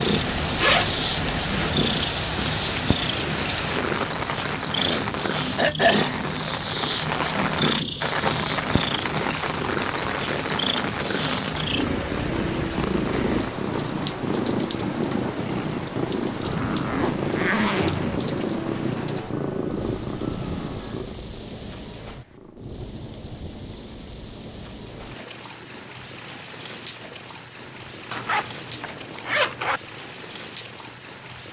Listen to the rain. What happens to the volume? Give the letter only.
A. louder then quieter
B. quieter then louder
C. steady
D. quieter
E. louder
D.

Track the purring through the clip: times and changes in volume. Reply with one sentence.
The purring can be heard from 0.0 to 31.3 s, getting quieter.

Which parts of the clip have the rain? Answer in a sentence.
The rain can be heard from 0.0 to 31.4 s.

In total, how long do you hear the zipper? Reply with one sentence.
You can hear the zipper for 5 seconds altogether.